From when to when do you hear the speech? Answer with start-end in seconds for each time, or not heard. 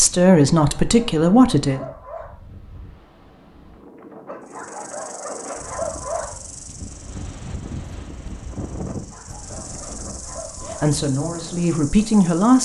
0.0-1.9, 10.8-12.6.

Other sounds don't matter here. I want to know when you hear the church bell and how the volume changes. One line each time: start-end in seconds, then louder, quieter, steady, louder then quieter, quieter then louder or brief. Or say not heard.
not heard.